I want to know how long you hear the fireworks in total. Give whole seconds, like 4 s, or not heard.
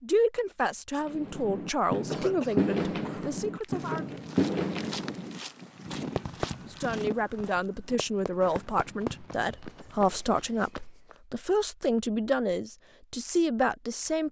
9 s.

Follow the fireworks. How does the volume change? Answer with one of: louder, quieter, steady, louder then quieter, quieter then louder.
quieter.